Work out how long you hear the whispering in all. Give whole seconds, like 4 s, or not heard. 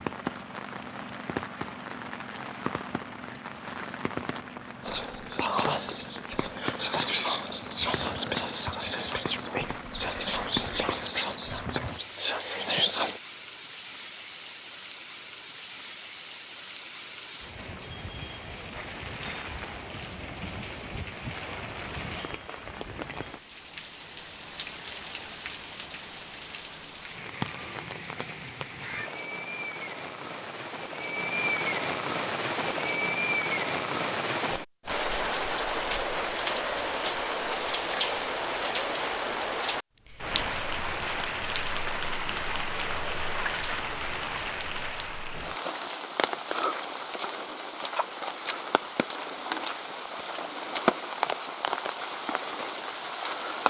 8 s.